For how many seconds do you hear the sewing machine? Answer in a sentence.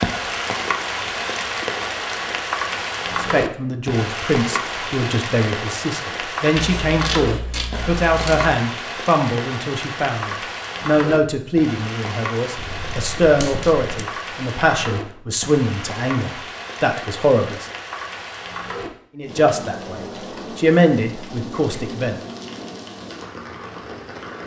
You can't hear the sewing machine here.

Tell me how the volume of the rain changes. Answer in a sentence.
The loudness of the rain goes down.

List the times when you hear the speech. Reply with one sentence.
The speech can be heard from 3.1 to 17.6 s and from 19.1 to 22.2 s.